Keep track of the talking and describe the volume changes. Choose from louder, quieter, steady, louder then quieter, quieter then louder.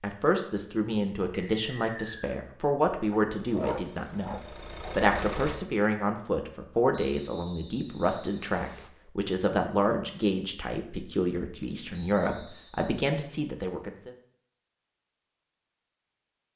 steady.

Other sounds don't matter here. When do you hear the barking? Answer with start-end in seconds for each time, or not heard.
3.1-5.0.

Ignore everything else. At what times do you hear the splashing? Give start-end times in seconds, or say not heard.
not heard.